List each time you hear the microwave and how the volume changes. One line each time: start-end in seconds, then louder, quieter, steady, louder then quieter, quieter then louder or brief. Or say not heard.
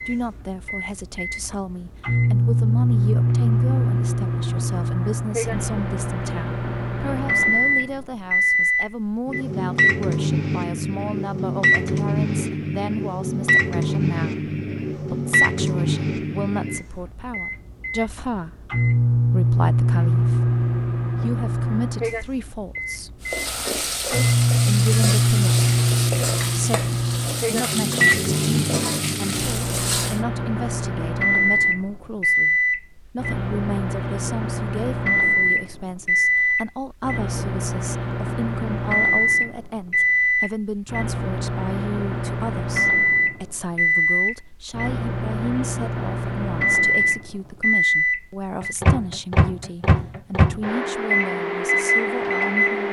0.0-52.8 steady.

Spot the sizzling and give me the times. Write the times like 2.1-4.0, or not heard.
23.2-30.2.